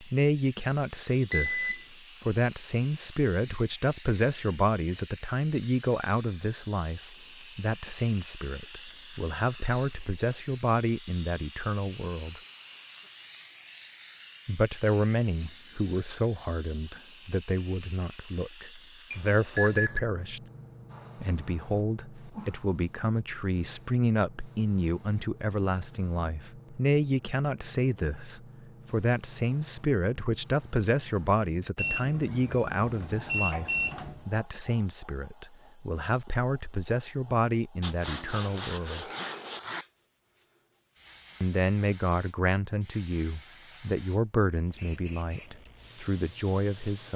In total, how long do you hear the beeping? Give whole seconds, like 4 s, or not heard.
4 s.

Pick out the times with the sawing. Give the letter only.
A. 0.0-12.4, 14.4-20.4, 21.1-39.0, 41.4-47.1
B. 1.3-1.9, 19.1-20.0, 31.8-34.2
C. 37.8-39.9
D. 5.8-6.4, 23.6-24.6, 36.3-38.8
C.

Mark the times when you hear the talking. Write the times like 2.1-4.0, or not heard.
0.0-12.4, 14.4-20.4, 21.1-39.0, 41.4-47.1.